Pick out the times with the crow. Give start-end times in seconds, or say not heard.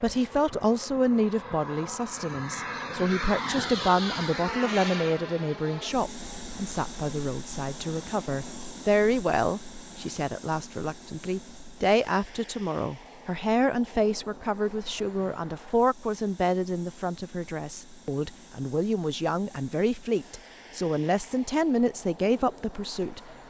not heard.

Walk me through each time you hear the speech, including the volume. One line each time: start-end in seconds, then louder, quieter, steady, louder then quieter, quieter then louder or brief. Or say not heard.
0.0-23.4 steady.